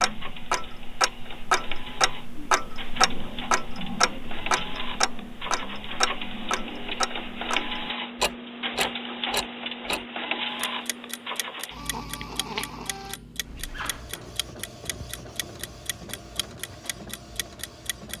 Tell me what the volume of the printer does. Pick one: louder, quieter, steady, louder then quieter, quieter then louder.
louder then quieter.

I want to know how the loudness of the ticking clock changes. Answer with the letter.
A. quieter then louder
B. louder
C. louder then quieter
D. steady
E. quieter
E.